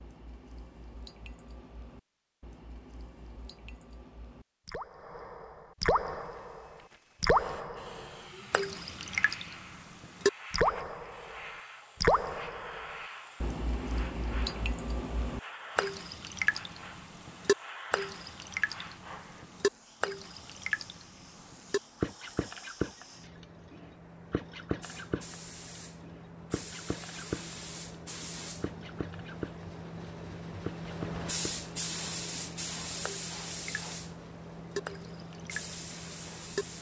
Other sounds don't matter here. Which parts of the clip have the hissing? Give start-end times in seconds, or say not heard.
6.0-36.7.